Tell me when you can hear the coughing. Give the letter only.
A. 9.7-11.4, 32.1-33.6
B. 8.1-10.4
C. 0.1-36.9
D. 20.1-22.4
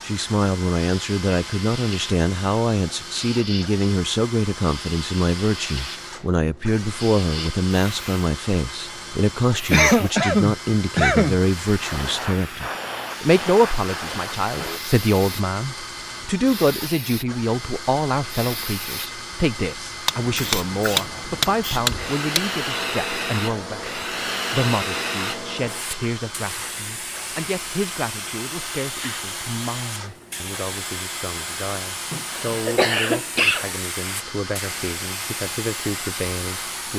A.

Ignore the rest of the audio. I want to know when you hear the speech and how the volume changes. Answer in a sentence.
The speech can be heard from 0.1 to 36.9 s, getting quieter.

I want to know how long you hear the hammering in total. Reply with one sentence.
The hammering can be heard for 2 seconds in total.